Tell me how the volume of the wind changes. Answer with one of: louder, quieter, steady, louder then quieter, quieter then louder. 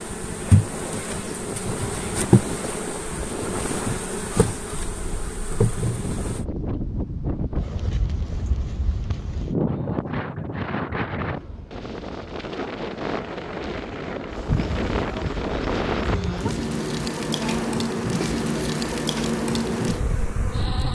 louder.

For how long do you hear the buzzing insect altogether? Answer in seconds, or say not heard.
13 s.